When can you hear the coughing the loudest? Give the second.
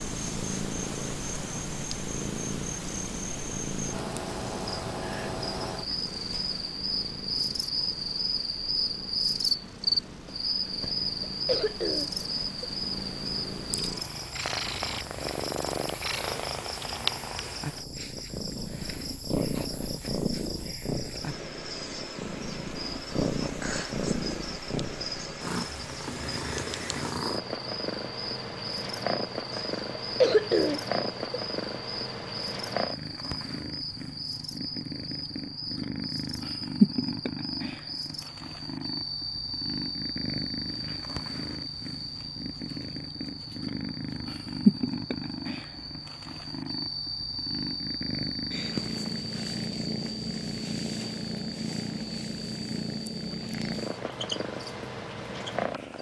30 s.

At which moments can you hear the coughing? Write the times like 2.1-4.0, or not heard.
10.8-12.7, 29.5-31.4.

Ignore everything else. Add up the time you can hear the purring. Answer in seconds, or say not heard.
56 s.